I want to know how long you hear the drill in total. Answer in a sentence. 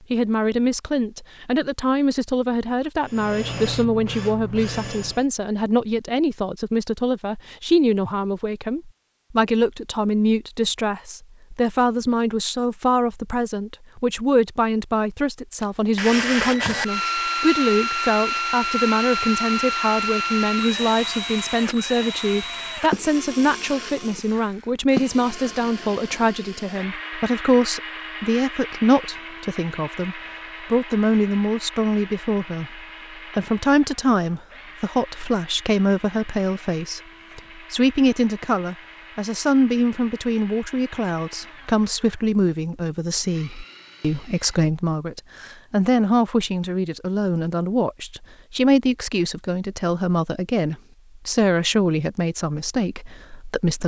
The drill can be heard for 31 seconds in total.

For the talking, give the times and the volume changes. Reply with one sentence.
You can hear the talking from 0.1 to 53.8 s, at a steady volume.